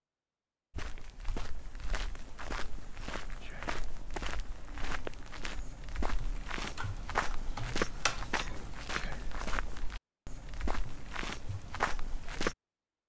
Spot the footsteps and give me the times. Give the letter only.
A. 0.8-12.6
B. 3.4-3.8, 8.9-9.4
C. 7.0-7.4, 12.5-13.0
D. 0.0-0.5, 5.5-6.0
A.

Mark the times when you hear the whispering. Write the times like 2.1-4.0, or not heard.
3.4-3.8, 8.9-9.4.